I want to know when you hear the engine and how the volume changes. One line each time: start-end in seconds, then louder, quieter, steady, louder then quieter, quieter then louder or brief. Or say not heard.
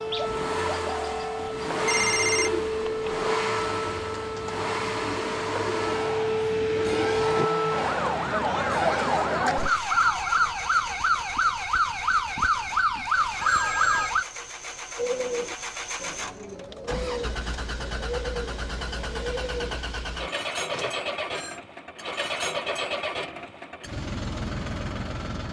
0.0-25.4 quieter then louder.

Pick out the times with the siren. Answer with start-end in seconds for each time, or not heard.
0.0-14.2.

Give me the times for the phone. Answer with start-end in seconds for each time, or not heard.
1.4-3.1, 12.5-14.1, 20.7-21.6.